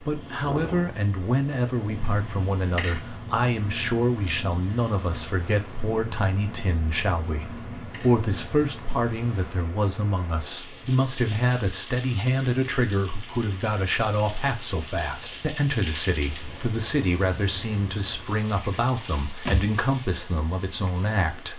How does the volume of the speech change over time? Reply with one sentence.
The volume of the speech stays about the same.